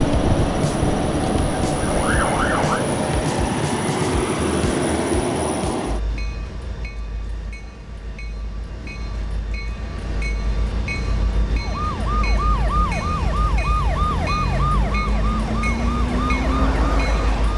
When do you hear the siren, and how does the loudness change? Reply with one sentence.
The siren can be heard briefly from 0.0 to 2.9 s; and from 11.6 to 17.5 s, at a steady volume.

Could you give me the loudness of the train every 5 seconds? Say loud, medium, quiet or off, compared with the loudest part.
loud, medium, medium, medium.